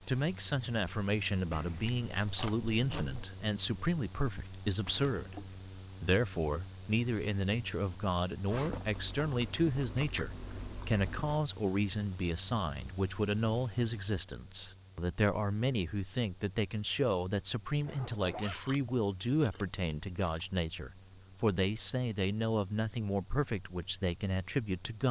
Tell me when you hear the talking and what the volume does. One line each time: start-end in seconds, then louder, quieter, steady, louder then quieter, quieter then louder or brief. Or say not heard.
0.1-25.0 steady.